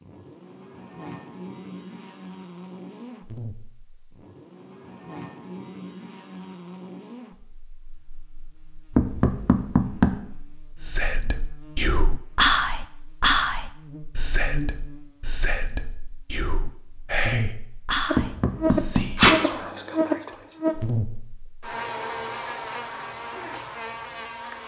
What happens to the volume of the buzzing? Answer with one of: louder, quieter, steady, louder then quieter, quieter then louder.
louder.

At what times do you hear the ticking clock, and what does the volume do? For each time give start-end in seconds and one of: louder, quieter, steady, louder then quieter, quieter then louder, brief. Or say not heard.
not heard.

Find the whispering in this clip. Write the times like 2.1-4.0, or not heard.
10.8-20.6.